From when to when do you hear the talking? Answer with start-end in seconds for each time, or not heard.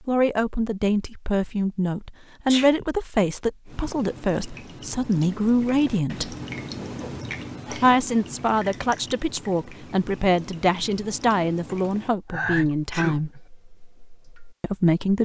0.1-6.3, 7.8-13.3, 14.6-15.2.